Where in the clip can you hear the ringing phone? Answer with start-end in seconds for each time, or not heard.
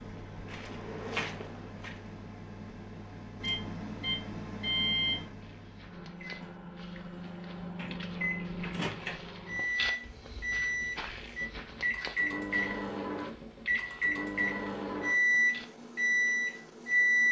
not heard.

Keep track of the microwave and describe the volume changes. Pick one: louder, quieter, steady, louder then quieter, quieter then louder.
louder.